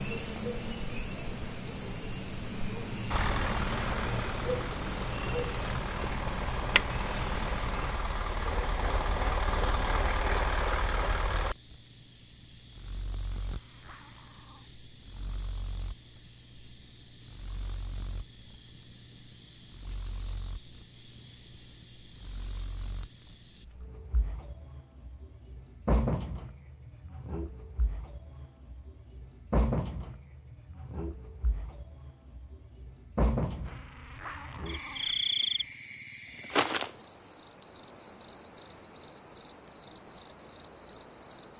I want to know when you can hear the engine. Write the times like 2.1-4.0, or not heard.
3.0-11.6.